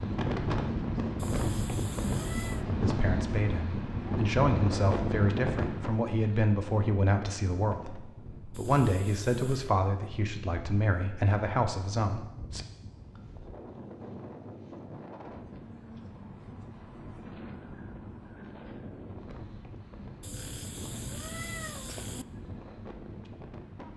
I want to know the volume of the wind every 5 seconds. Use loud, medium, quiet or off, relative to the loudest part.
loud, medium, quiet, quiet, quiet.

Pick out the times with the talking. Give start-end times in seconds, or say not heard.
2.8-12.7.